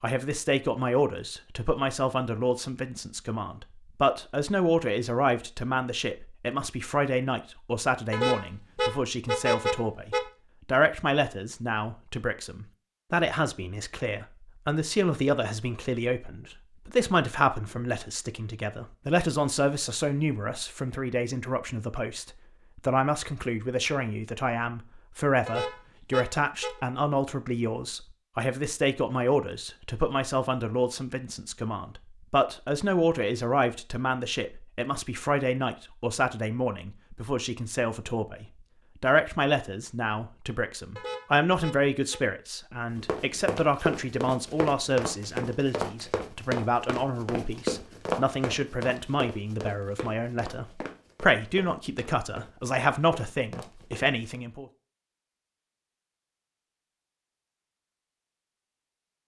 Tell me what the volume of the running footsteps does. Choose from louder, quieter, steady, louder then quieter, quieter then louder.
quieter.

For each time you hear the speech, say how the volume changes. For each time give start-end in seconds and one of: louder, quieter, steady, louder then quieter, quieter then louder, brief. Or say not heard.
0.0-54.6 steady.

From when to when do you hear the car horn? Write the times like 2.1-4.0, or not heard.
8.1-10.2, 25.4-26.8, 41.0-42.2.